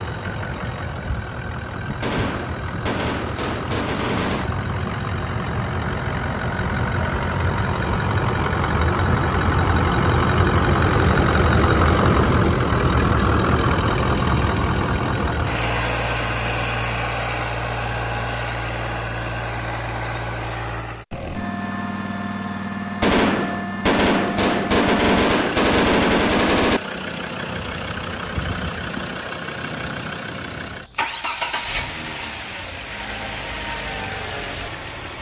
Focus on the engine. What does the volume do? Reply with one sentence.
The loudness of the engine goes up, then down.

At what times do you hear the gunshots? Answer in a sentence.
You can hear the gunshots from 2.0 to 4.5 s and from 23.0 to 26.8 s.